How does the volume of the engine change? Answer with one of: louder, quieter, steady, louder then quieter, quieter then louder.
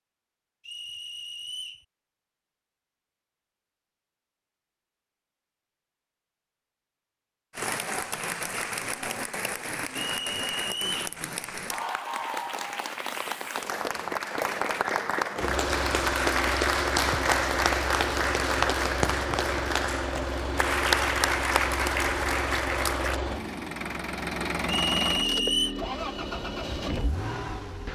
steady.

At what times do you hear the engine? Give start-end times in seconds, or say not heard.
15.3-27.8.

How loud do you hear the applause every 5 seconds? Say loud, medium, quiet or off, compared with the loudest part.
off, medium, medium, loud, loud, off.